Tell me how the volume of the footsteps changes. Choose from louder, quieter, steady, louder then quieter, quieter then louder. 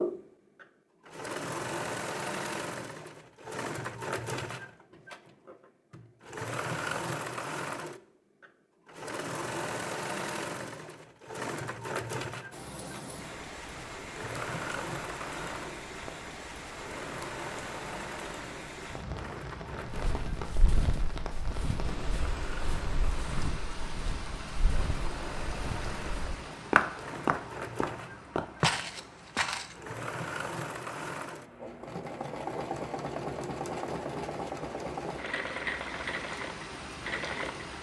louder.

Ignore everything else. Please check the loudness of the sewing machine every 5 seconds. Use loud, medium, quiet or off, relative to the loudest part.
loud, loud, loud, medium, medium, medium, loud, loud.